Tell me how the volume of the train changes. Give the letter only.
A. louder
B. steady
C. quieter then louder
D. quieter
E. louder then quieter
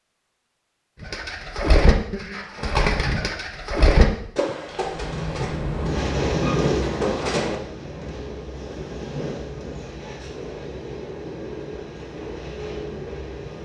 D.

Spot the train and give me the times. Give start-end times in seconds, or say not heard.
4.6-13.6.